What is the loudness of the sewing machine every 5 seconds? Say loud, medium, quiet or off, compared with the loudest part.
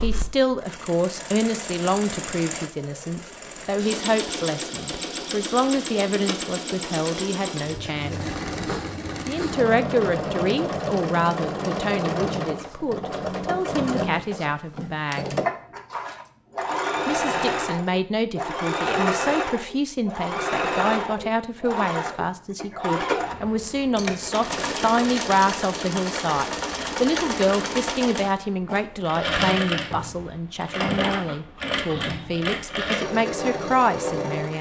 medium, loud, loud, loud, loud, loud, loud.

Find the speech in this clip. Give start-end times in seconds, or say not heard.
0.0-8.3, 9.2-15.3, 17.1-34.5.